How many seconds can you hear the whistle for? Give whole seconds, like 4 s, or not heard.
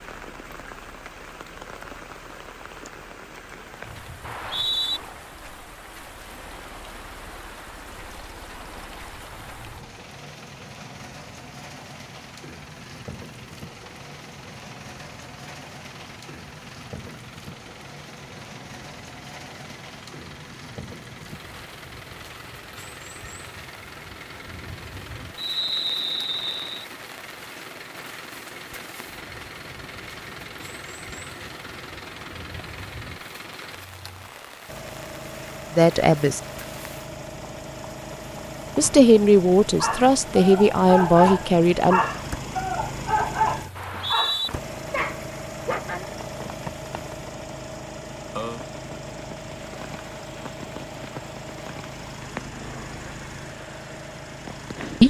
3 s.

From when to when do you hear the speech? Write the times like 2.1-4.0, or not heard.
35.8-36.4, 38.8-42.0.